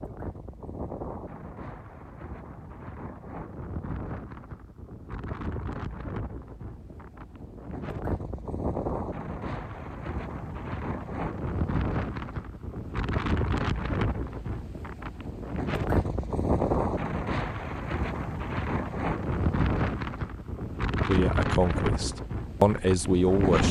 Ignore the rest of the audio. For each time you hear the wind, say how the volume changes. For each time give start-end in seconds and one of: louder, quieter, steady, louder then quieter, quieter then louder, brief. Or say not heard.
0.0-23.6 louder.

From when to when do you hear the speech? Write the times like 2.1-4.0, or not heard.
21.1-23.6.